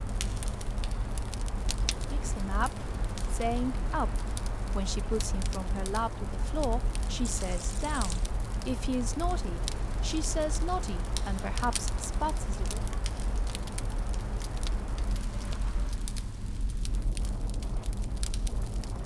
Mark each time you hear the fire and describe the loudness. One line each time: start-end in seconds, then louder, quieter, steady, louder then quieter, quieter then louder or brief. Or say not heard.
0.0-19.0 steady.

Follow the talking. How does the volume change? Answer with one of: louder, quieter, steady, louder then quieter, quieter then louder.
steady.